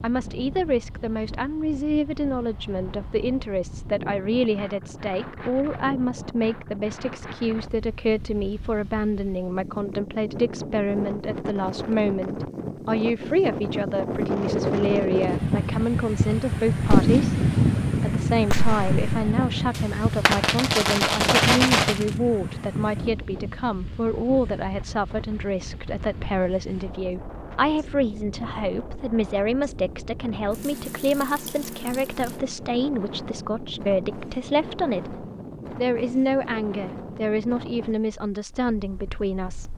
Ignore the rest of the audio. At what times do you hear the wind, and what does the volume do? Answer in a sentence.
The wind can be heard from 0.0 to 39.7 s, getting louder then quieter.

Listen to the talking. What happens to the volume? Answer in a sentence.
The loudness of the talking stays about the same.